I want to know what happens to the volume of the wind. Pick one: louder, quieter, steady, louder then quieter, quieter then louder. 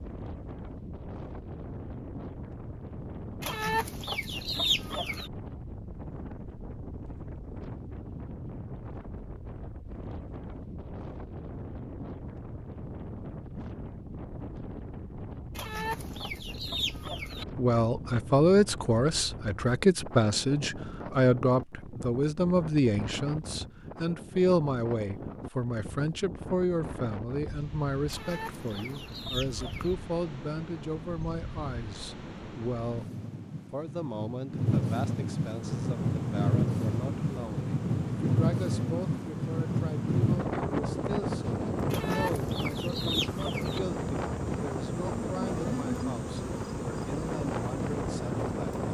louder.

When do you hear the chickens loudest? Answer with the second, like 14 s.
5 s.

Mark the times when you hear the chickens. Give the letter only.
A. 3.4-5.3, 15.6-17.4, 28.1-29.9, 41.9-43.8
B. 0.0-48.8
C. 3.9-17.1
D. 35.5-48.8
A.